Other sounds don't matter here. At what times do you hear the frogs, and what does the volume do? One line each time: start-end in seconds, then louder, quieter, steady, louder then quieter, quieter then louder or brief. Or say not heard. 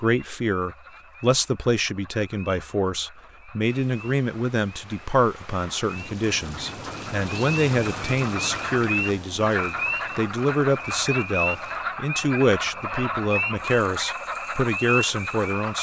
0.0-15.7 louder.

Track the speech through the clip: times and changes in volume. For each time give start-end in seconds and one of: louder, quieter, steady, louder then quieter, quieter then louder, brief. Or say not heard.
0.0-15.7 steady.